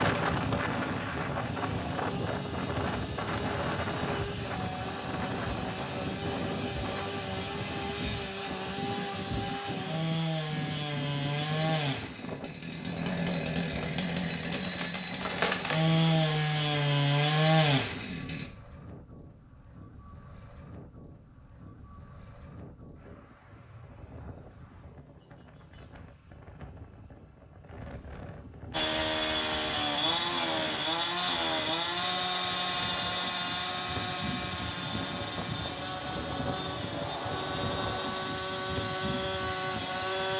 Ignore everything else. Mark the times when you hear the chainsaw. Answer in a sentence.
You can hear the chainsaw from 0.2 to 18.5 s and from 28.7 to 40.3 s.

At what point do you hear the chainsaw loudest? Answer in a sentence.
The volume of the chainsaw peaks at 17 seconds.